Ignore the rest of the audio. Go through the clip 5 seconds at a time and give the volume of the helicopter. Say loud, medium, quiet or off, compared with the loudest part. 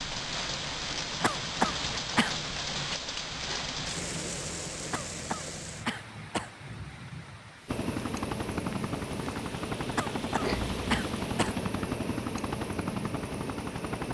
off, loud, loud.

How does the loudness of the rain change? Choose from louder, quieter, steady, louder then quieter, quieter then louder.
quieter.